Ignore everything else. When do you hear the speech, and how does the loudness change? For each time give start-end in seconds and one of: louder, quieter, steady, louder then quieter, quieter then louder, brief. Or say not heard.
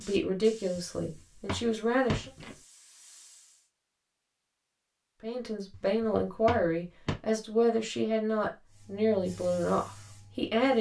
0.0-2.3 brief
5.2-10.7 steady.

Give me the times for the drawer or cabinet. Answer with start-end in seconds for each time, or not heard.
1.0-2.5, 5.7-7.2.